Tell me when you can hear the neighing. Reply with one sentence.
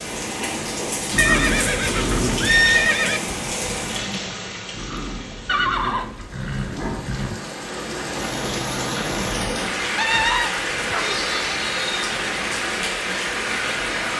The neighing can be heard from 1.1 to 3.2 s, from 5.5 to 7.4 s and from 9.9 to 11.2 s.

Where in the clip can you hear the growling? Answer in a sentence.
The growling can be heard from 1.1 to 2.6 s, from 4.7 to 7.0 s and from 10.9 to 11.6 s.